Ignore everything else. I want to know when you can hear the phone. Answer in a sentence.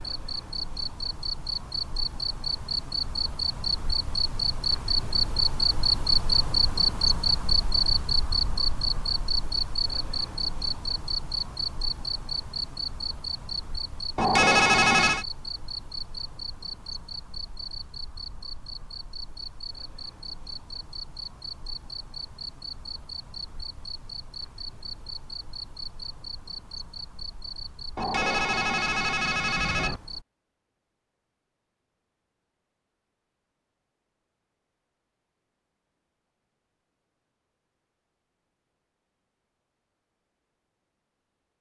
The phone can be heard from 14.2 to 15.2 s and from 27.9 to 30.0 s.